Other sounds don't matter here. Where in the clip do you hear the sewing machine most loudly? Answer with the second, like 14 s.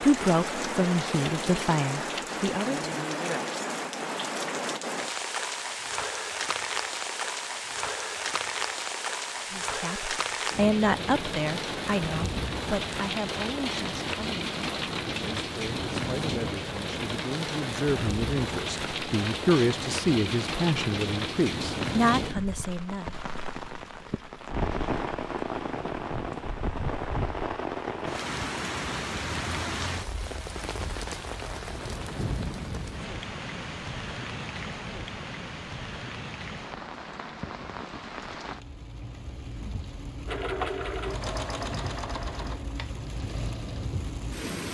41 s.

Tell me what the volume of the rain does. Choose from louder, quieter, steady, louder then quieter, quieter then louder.
quieter.